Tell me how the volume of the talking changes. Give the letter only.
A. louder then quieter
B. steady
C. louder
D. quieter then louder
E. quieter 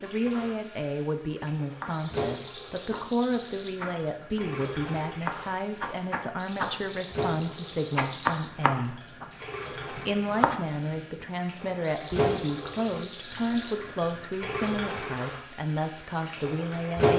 B.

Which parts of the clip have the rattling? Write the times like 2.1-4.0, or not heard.
1.9-3.8, 6.3-8.6, 11.8-13.8.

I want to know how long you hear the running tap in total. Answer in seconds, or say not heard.
17 s.